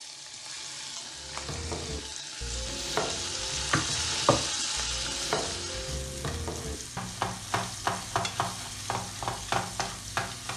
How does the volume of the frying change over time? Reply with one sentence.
The volume of the frying goes up, then down.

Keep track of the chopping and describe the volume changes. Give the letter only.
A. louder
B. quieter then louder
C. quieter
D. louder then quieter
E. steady
B.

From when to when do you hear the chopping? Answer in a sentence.
You can hear the chopping from 1.2 to 10.5 s.